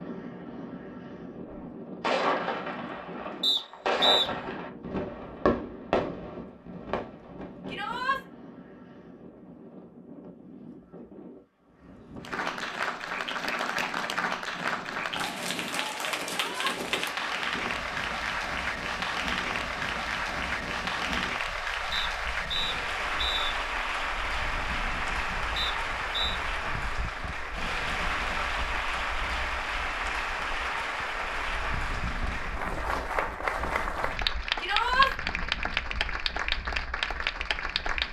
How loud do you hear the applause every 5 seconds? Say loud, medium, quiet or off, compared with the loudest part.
off, off, loud, loud, loud, loud, loud, loud.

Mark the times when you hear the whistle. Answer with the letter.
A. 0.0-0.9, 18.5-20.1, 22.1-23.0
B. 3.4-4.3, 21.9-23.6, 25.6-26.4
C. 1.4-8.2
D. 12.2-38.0
B.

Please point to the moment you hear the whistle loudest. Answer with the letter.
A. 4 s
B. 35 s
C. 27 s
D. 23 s
A.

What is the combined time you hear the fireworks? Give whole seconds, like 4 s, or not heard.
7 s.